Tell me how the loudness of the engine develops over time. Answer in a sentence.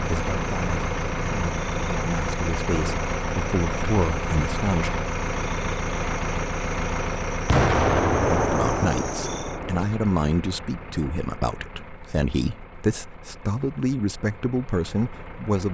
The volume of the engine goes down.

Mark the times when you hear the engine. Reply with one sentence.
The engine can be heard from 0.0 to 15.6 s.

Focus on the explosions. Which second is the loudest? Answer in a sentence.
The volume of the explosions peaks at 8 seconds.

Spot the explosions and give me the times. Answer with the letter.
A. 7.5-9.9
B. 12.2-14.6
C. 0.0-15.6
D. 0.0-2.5
A.